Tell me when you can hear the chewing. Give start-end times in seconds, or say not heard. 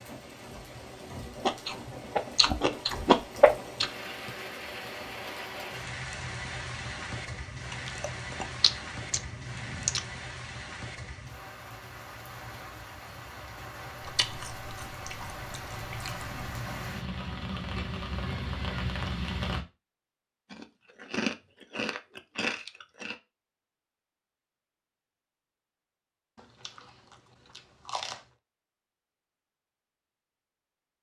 1.4-3.9, 7.7-10.0, 14.0-16.3, 20.5-23.1, 26.4-28.2.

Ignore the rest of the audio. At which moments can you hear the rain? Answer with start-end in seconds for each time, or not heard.
0.0-19.6.